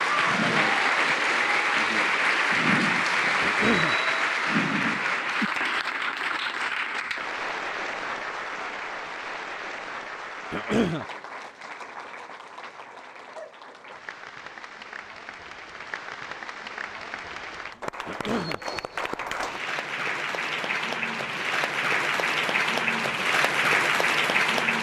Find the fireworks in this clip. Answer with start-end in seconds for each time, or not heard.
not heard.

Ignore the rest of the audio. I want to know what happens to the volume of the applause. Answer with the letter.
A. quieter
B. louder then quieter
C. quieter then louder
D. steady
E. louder
C.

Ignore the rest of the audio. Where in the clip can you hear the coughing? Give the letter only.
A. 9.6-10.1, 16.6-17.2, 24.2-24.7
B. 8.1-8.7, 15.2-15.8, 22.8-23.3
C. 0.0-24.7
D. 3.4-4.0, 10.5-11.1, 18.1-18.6
D.